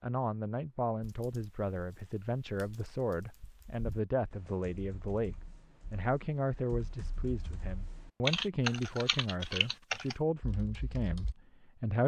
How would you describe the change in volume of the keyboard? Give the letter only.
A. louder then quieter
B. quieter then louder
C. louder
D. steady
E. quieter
C.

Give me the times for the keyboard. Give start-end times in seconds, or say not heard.
1.0-11.3.